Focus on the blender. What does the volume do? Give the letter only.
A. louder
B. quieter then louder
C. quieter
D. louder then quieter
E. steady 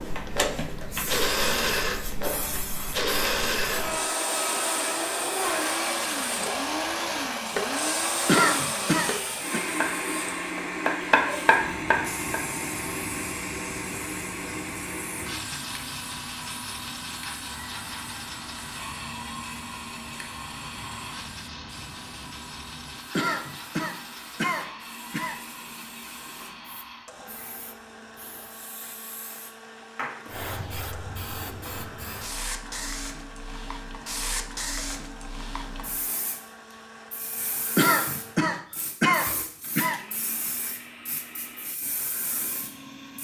C.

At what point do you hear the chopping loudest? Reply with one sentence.
The loudest moment of the chopping is at 11 seconds.